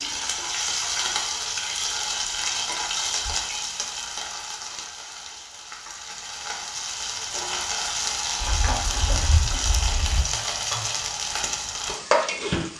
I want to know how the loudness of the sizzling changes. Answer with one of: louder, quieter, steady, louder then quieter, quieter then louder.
quieter then louder.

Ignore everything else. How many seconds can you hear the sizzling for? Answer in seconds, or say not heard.
13 s.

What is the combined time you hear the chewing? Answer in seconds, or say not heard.
2 s.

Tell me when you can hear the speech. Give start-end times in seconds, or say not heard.
not heard.